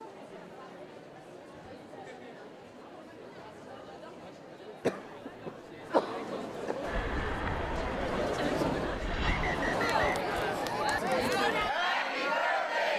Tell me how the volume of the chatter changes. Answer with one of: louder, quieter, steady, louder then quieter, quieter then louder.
louder.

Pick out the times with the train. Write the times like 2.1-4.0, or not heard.
6.8-9.8.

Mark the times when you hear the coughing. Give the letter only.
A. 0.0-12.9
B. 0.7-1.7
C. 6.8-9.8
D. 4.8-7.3
D.